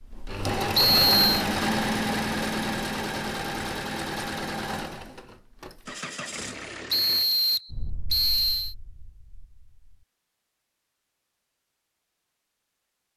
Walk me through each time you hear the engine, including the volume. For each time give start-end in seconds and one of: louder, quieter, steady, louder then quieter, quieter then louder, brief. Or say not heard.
0.0-7.3 quieter.